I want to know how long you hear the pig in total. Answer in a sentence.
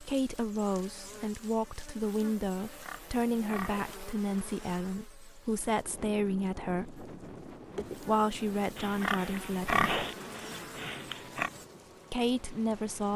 The pig can be heard for 5 seconds in total.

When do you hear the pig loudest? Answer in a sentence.
The loudest moment of the pig is at 10 seconds.